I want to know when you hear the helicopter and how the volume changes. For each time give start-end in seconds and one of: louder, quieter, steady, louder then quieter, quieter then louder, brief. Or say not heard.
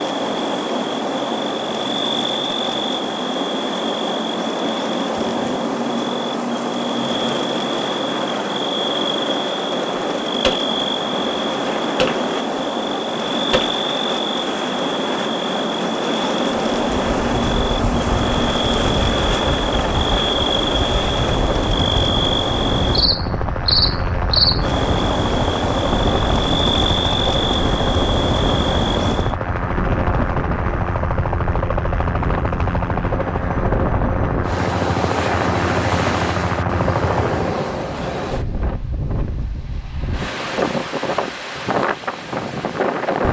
0.0-37.5 louder.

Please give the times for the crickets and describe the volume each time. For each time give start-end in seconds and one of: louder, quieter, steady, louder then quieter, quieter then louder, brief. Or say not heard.
0.0-29.4 steady.